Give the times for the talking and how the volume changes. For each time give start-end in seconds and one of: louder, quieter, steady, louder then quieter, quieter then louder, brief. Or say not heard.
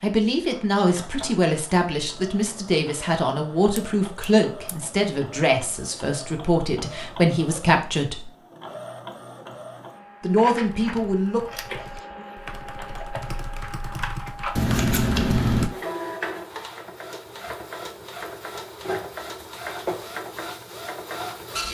0.0-8.3 steady
10.2-11.4 brief.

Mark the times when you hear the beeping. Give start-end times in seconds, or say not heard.
not heard.